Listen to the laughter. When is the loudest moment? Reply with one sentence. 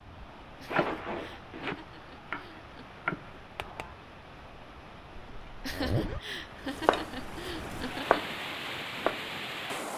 The volume of the laughter peaks at 6 seconds.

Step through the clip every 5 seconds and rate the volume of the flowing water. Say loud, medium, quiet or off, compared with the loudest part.
medium, loud.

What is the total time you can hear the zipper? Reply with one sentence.
You can hear the zipper for 2 seconds altogether.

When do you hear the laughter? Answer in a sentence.
The laughter can be heard from 0.6 to 2.9 s and from 5.6 to 8.2 s.